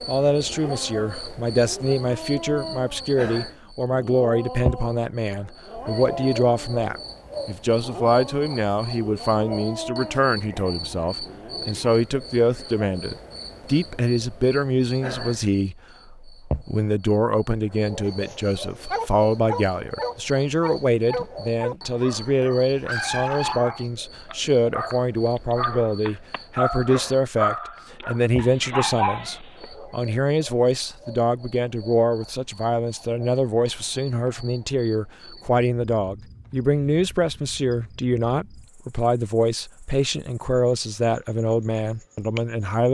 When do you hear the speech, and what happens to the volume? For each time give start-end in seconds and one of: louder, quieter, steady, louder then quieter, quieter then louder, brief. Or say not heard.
0.1-42.9 steady.